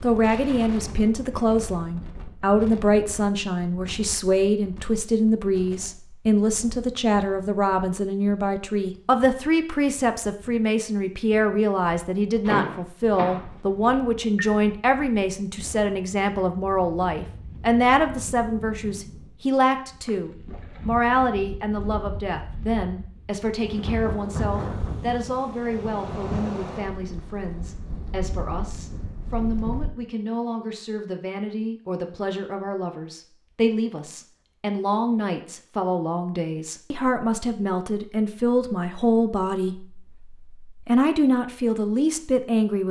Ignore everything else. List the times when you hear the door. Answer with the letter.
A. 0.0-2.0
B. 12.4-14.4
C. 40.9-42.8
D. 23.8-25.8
B.